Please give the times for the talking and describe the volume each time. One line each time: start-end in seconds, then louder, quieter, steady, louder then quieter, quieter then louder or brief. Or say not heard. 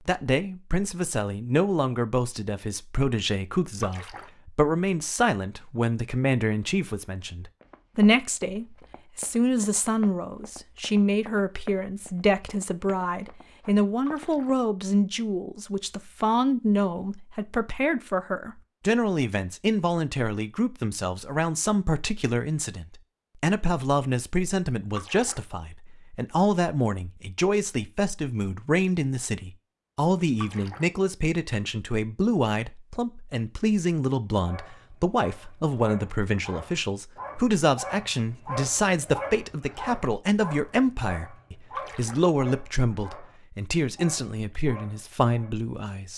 0.1-46.1 steady.